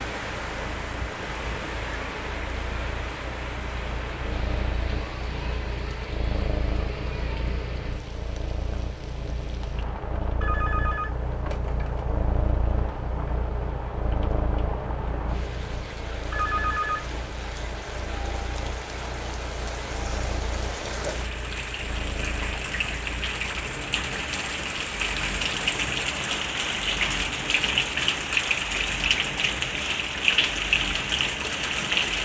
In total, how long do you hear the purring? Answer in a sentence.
The purring can be heard for 32 seconds in total.